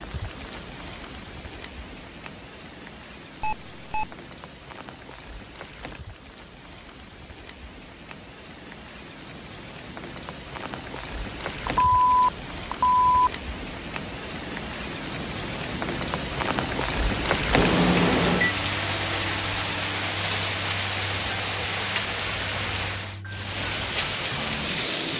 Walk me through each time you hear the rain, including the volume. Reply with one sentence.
The rain can be heard from 0.0 to 25.1 s, getting louder.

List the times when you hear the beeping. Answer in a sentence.
The beeping can be heard from 3.4 to 4.2 s, from 11.6 to 13.3 s and from 17.6 to 18.6 s.